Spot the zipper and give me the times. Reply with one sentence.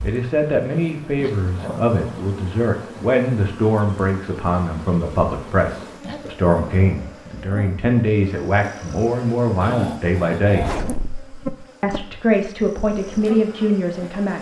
The zipper can be heard from 10.6 to 11.4 s.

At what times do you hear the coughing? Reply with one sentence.
The coughing can't be heard in this clip.